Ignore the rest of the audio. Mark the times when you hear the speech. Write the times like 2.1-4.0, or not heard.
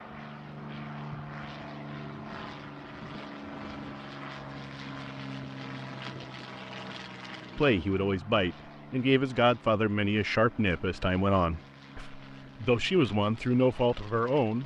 7.5-14.6.